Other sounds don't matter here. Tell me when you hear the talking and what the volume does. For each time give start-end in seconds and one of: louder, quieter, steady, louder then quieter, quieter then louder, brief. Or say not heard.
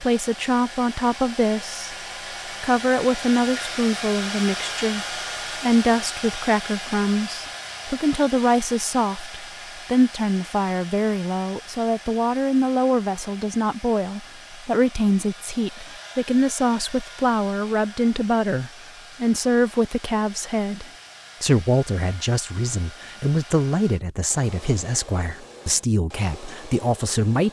0.0-1.9 brief
2.6-27.4 steady.